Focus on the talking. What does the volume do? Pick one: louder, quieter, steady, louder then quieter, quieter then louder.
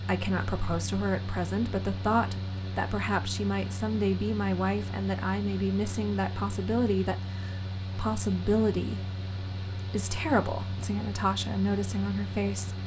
steady.